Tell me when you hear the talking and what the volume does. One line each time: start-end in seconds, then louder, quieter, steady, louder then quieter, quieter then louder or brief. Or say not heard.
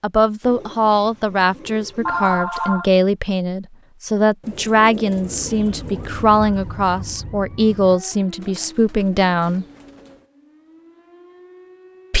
0.0-9.7 steady.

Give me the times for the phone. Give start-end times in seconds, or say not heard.
2.0-2.9.